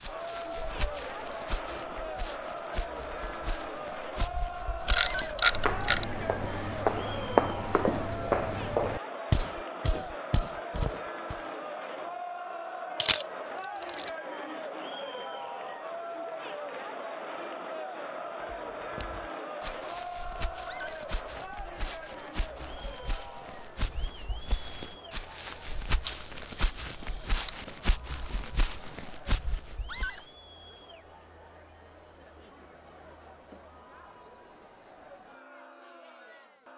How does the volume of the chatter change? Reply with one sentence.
The loudness of the chatter goes down.